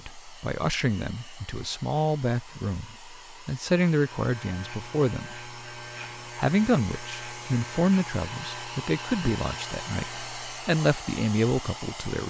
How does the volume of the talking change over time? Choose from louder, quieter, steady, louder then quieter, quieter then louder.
steady.